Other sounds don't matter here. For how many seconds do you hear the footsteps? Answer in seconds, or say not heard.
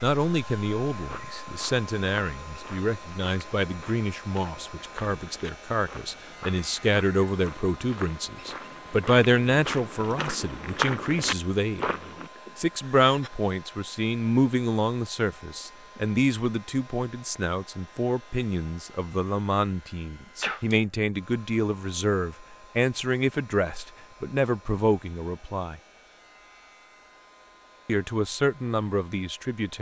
11 s.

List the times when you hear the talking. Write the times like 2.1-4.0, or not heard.
0.0-11.8, 12.6-25.8, 27.9-29.7.